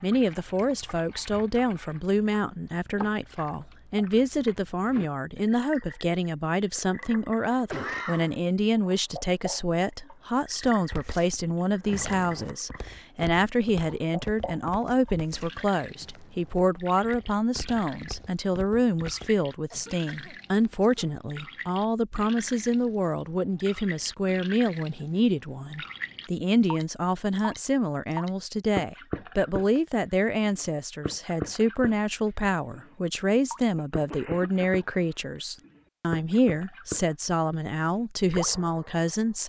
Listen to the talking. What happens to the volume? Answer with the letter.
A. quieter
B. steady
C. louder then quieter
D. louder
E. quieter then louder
B.